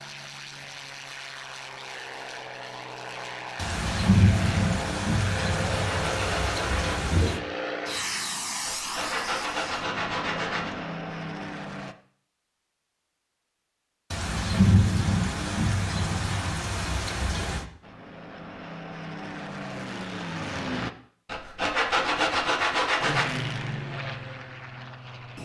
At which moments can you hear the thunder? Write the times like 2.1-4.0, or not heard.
3.5-7.4, 14.1-17.6.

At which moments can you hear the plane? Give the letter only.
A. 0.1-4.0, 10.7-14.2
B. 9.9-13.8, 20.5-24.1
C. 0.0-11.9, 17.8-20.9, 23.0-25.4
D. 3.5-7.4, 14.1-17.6
C.